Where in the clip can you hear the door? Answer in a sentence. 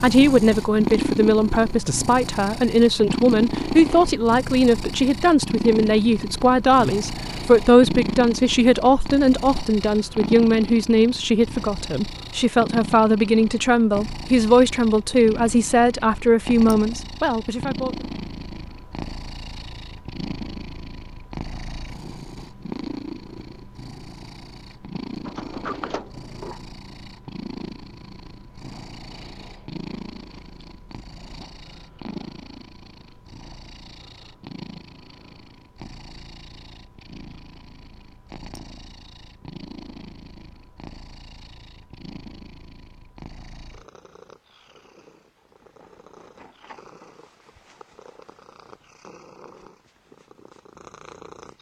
The door can be heard from 25.2 to 26.6 s.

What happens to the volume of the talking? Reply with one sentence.
The loudness of the talking stays about the same.